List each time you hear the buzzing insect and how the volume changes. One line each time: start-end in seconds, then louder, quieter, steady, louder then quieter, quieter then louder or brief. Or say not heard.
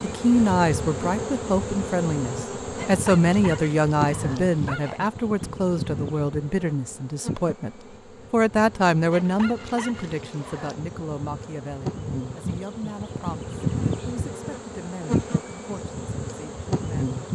0.0-17.2 quieter then louder.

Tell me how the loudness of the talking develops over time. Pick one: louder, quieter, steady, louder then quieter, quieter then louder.
quieter.